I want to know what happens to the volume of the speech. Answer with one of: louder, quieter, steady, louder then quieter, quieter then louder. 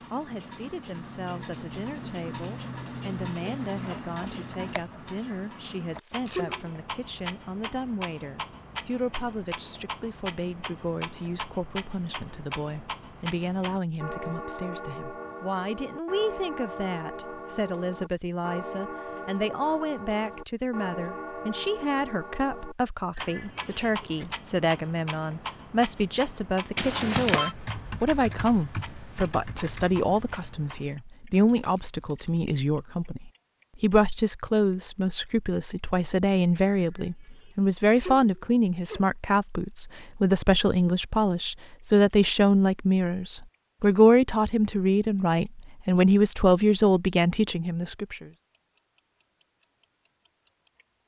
louder.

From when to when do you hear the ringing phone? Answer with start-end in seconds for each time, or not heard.
26.8-27.6.